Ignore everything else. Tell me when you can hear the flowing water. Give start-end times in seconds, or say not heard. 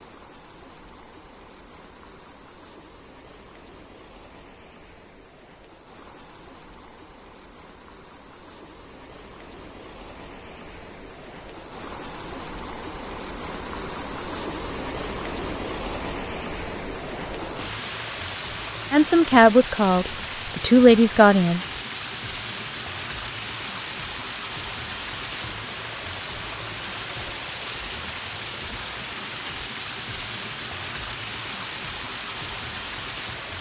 0.0-33.5.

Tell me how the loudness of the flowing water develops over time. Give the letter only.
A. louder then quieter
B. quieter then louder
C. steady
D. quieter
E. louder
E.